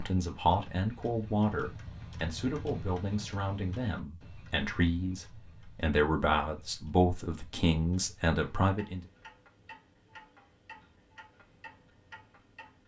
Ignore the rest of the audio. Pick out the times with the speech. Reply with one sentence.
You can hear the speech from 0.0 to 9.0 s.